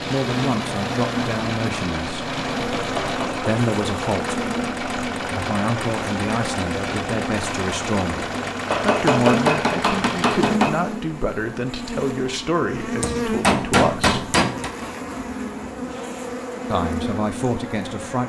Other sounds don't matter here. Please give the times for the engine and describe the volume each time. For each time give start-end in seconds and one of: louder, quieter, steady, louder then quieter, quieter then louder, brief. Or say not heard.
0.0-10.6 steady.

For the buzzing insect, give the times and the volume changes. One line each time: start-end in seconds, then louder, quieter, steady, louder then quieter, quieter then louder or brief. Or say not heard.
0.0-18.2 steady.